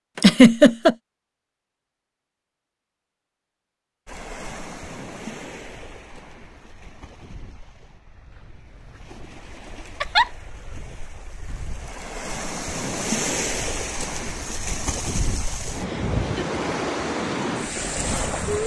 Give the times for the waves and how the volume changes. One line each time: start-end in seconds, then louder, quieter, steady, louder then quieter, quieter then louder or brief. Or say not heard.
4.0-18.6 quieter then louder.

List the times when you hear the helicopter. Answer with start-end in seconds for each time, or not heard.
not heard.